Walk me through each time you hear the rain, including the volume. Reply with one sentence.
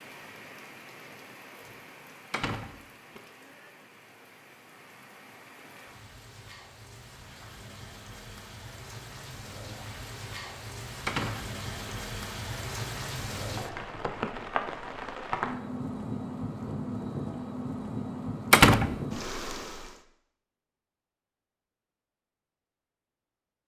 You can hear the rain from 0.0 to 20.0 s, getting louder.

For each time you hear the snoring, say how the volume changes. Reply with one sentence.
The snoring can't be heard in this clip.